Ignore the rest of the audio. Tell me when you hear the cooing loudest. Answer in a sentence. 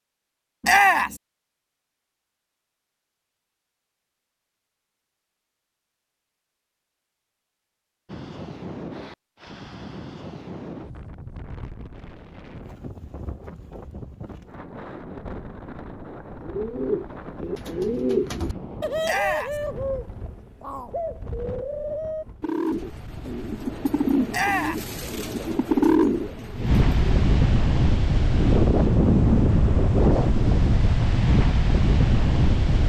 The volume of the cooing peaks at 26 seconds.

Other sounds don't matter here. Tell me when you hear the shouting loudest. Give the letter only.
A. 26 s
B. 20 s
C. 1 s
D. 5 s
C.